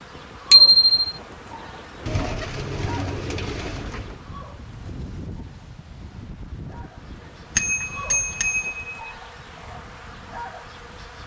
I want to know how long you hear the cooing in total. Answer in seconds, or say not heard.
2 s.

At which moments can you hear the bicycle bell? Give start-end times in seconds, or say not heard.
0.5-0.9, 7.5-9.1.